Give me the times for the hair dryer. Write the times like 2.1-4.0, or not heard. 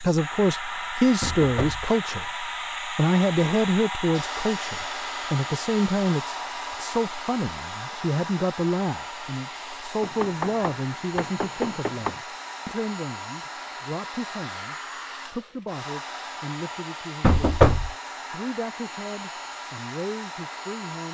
0.0-21.1.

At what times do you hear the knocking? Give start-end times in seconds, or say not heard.
1.2-1.9, 10.0-12.2, 17.2-17.9.